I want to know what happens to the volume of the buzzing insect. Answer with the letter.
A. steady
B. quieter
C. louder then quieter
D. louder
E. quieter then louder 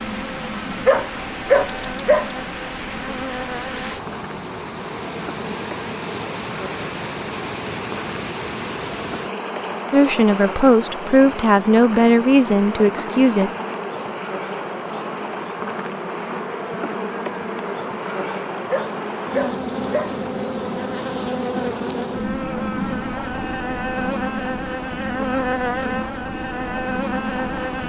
D.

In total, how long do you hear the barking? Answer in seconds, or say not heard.
3 s.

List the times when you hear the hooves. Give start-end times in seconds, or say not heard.
not heard.